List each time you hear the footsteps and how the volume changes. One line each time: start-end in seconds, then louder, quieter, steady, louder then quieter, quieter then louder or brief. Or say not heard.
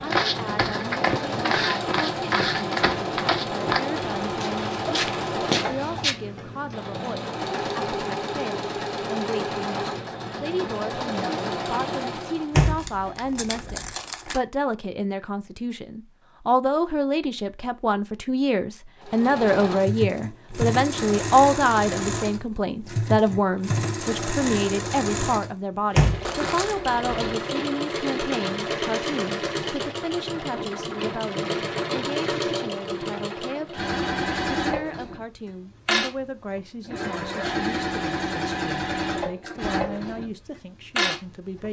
0.1-6.2 steady.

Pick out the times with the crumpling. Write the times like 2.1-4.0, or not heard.
12.8-14.4, 26.2-26.8.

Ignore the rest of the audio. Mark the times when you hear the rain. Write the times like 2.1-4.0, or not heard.
not heard.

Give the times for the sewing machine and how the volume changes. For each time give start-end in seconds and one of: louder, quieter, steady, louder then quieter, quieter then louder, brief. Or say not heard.
0.0-12.6 steady
19.0-41.6 steady.